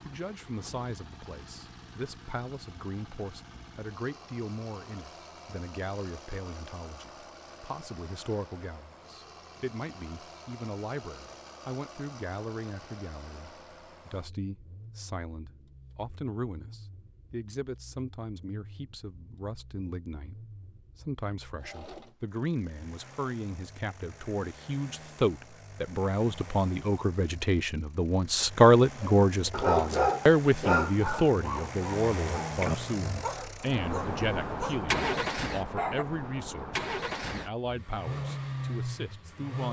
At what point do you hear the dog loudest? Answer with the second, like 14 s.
30 s.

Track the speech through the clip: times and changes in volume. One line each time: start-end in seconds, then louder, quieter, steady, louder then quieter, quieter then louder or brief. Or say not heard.
0.1-39.6 louder then quieter.